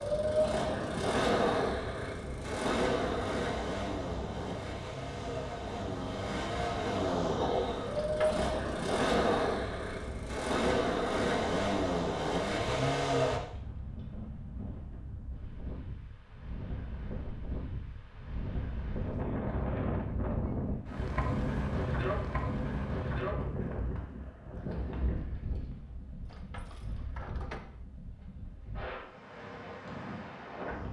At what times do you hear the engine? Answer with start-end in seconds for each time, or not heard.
0.0-13.4.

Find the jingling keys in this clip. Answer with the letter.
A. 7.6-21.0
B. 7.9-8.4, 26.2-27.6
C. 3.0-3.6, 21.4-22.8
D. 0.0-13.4
B.